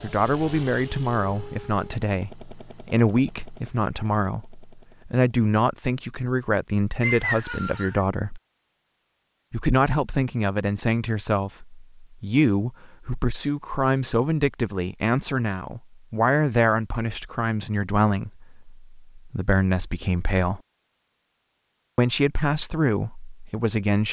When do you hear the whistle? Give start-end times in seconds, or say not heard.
7.0-8.1.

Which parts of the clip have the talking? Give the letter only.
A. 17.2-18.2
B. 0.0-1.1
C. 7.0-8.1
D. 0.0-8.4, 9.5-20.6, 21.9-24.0
D.